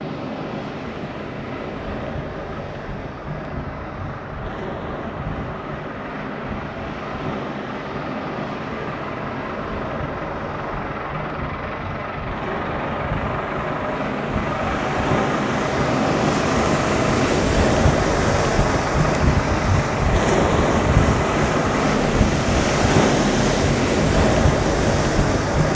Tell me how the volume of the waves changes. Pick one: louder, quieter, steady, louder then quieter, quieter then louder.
louder.